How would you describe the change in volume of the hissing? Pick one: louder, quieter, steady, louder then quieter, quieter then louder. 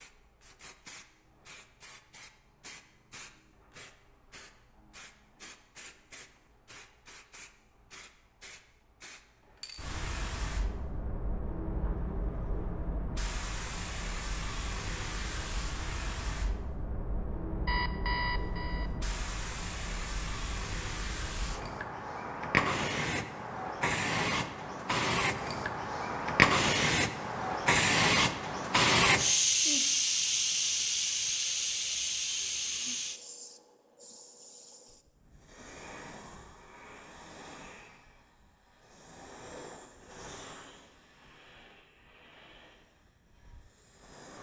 louder then quieter.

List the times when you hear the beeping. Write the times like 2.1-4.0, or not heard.
17.6-18.9.